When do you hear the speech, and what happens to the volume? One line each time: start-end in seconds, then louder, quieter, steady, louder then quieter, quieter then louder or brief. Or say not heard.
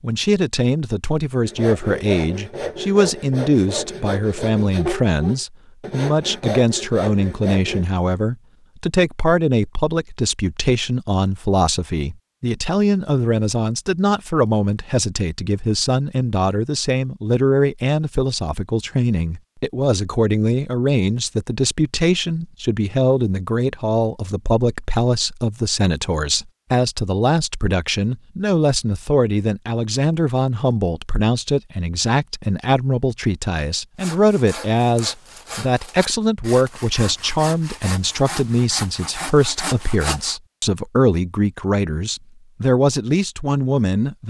0.0-44.2 steady.